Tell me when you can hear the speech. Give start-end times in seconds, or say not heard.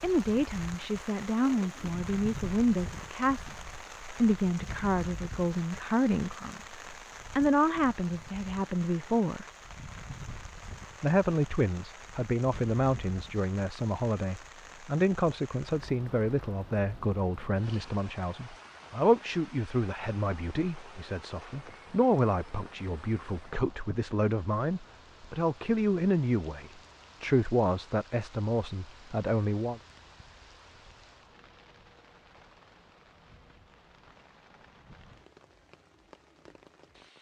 0.0-6.6, 7.3-9.4, 11.0-29.8.